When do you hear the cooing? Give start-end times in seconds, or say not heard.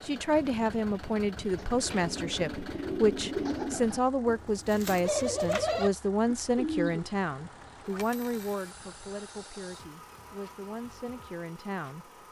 1.6-7.9.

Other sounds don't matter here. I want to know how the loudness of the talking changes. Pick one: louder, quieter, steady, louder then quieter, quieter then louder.
quieter.